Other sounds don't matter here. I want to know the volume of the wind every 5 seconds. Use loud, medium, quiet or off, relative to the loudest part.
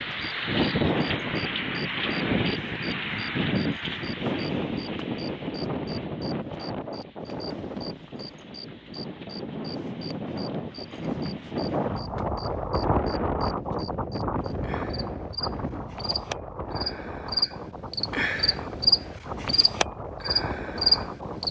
loud, medium, loud, medium, medium.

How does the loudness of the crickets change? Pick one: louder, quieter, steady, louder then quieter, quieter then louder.
louder.